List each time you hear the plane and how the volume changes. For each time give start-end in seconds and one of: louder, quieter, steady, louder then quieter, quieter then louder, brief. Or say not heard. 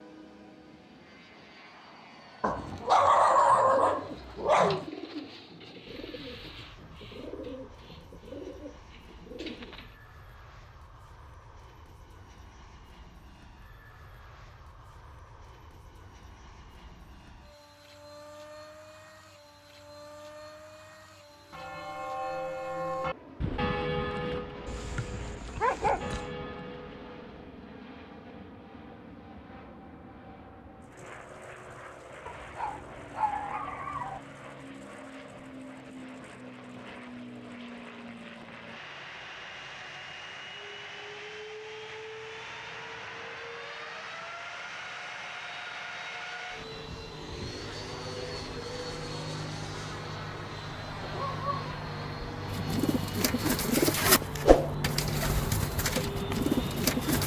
0.0-57.2 louder.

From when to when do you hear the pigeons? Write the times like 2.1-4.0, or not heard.
3.1-9.9, 52.5-57.2.